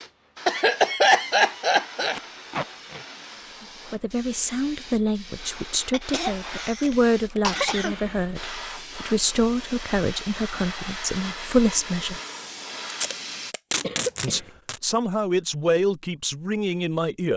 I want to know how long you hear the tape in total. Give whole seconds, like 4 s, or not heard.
4 s.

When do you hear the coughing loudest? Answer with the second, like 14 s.
1 s.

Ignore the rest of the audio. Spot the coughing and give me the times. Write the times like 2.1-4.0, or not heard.
0.5-2.1, 5.9-8.0, 13.8-14.5.